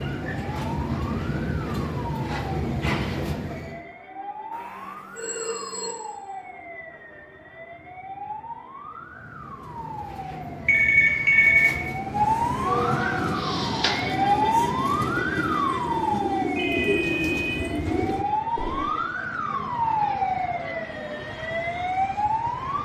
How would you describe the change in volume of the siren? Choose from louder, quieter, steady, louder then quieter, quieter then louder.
louder.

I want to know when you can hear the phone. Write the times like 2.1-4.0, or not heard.
4.5-6.0, 10.7-11.7, 16.6-17.6.